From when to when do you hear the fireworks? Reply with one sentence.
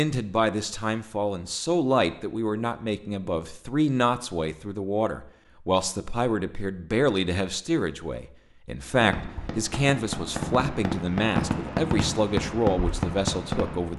The fireworks can be heard from 8.8 to 13.9 s.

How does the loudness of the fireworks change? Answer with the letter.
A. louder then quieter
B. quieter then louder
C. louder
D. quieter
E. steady
C.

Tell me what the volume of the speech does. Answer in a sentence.
The volume of the speech stays about the same.